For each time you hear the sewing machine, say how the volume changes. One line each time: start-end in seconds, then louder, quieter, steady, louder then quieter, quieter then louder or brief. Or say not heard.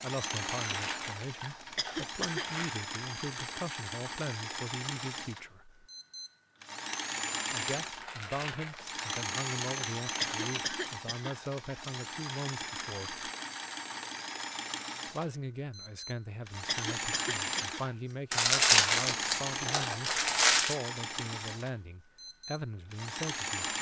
0.0-23.7 steady.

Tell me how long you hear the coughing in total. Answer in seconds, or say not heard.
3 s.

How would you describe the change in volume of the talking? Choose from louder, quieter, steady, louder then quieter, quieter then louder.
steady.